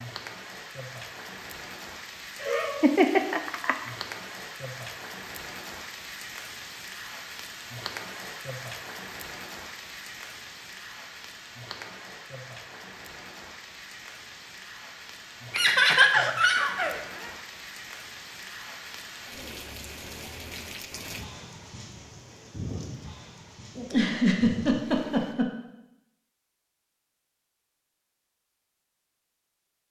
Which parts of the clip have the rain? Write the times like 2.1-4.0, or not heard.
0.0-25.4.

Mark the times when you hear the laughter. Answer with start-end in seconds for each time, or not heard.
2.4-3.8, 15.5-17.0, 23.8-25.5.